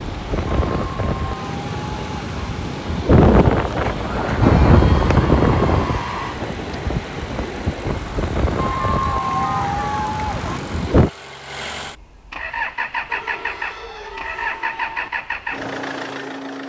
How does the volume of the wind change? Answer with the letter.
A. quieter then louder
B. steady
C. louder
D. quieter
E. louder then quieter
E.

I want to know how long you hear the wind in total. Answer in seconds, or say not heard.
11 s.